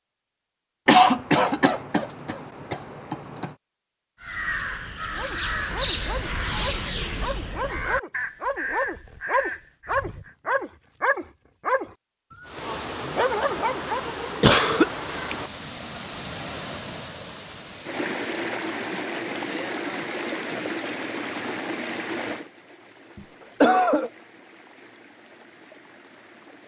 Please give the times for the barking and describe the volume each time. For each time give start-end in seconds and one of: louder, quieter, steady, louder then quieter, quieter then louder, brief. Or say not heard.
5.1-14.1 louder.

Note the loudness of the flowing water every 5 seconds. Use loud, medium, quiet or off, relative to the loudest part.
off, off, loud, loud, loud, quiet.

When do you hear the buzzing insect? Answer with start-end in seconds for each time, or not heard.
not heard.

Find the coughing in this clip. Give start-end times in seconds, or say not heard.
0.8-3.5, 14.4-14.8, 23.1-24.1.